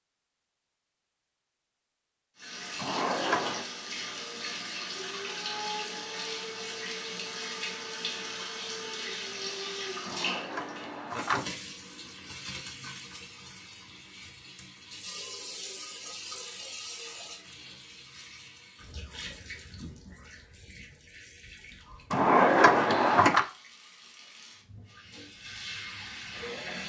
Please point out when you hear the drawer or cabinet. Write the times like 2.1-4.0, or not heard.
2.8-3.6, 10.1-11.5, 22.1-23.4.